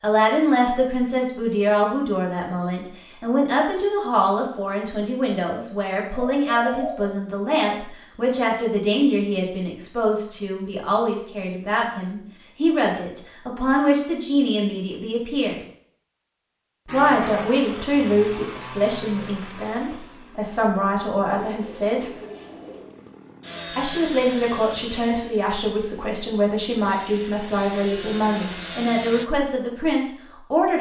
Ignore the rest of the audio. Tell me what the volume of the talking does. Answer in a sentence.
The volume of the talking stays about the same.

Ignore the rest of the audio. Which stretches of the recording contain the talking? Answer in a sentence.
You can hear the talking from 0.0 to 15.6 s, from 16.9 to 22.1 s and from 23.8 to 30.7 s.